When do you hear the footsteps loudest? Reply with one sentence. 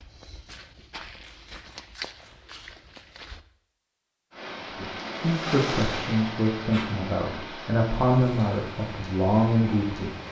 The volume of the footsteps peaks at 2 seconds.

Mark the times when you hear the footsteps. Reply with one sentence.
The footsteps can be heard from 0.0 to 3.4 s.